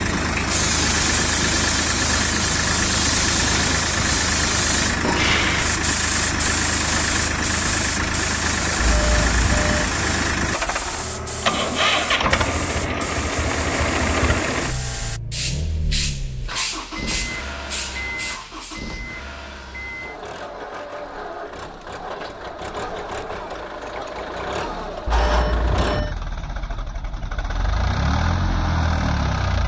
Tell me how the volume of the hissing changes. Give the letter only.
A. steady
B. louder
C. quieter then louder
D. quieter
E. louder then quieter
D.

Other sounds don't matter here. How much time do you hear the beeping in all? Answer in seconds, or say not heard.
2 s.